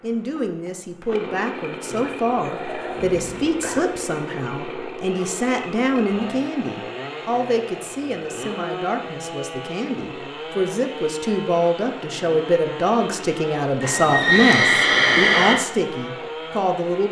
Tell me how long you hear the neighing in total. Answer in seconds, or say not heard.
4 s.